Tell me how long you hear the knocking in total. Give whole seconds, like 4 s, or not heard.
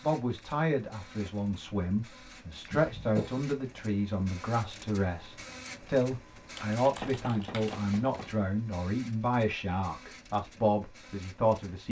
2 s.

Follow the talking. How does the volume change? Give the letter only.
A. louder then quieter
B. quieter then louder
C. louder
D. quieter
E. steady
E.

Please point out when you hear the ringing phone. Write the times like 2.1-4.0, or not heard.
not heard.